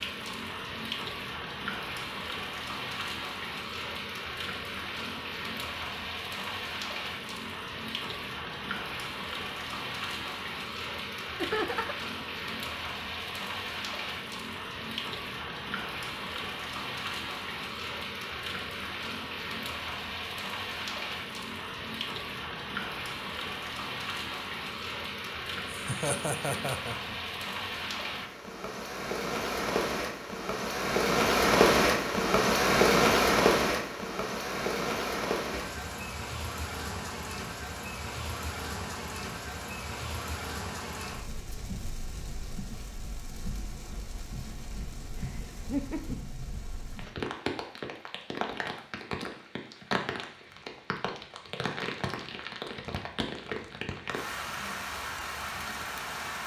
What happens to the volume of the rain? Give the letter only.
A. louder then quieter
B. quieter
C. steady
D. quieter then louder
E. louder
A.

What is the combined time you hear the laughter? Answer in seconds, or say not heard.
3 s.